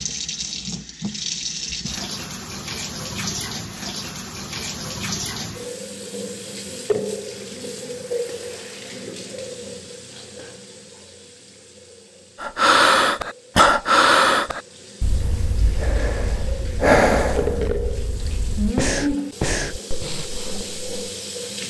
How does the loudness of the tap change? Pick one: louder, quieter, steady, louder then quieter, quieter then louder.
quieter then louder.